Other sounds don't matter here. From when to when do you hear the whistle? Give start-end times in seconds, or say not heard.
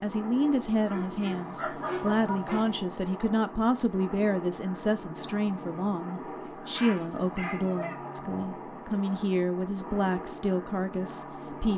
not heard.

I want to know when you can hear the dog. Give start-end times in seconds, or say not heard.
0.8-2.8, 6.4-8.0.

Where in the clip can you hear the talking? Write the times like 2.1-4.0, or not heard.
0.0-11.7.